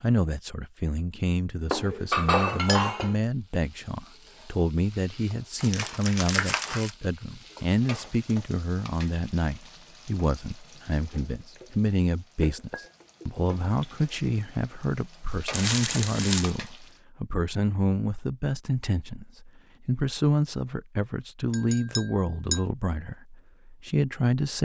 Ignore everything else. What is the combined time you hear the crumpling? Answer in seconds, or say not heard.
2 s.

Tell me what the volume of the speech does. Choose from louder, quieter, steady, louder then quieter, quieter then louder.
steady.